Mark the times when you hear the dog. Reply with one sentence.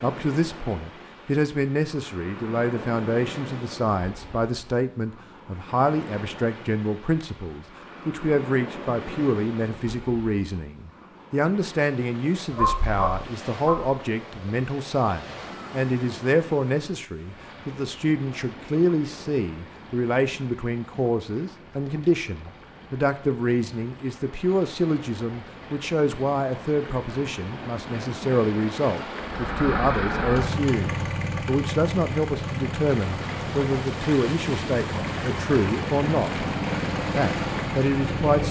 The dog can be heard from 12.5 to 13.9 s.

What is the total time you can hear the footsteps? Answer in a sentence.
You can't hear the footsteps here.